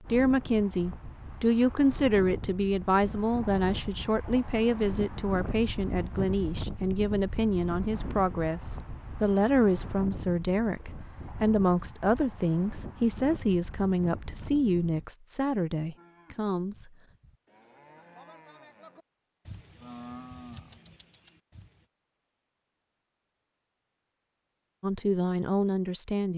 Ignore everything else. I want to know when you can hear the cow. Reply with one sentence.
The cow can be heard from 15.9 to 21.9 s.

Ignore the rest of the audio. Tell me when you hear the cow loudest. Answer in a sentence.
The volume of the cow peaks at 20 seconds.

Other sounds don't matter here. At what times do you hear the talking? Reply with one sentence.
You can hear the talking from 0.1 to 16.9 s and from 24.8 to 26.3 s.